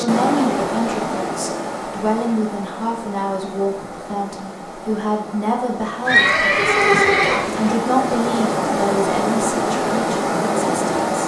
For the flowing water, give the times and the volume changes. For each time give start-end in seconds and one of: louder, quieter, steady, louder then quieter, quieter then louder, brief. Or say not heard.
0.0-11.2 quieter then louder.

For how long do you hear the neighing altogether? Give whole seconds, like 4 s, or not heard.
2 s.